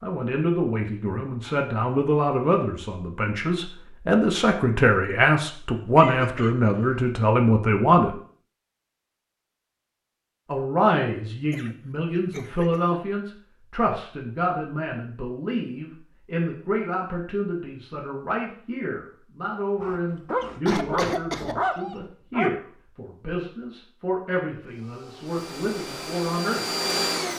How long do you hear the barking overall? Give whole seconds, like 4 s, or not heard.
3 s.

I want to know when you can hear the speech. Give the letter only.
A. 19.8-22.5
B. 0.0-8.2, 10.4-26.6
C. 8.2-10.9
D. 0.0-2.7
B.